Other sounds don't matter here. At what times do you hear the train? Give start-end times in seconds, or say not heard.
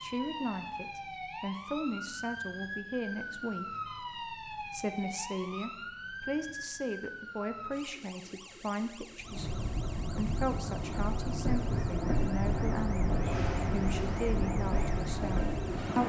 9.2-16.0.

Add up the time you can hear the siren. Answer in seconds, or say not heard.
16 s.